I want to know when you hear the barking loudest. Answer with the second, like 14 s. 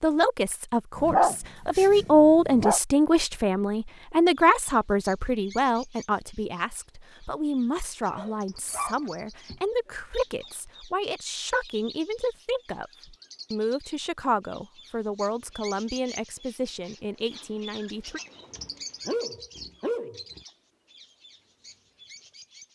1 s.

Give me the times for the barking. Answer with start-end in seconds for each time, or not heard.
0.9-2.8, 8.1-9.6, 18.5-20.4.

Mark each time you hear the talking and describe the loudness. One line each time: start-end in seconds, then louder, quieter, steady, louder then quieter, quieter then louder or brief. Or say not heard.
0.0-18.2 quieter.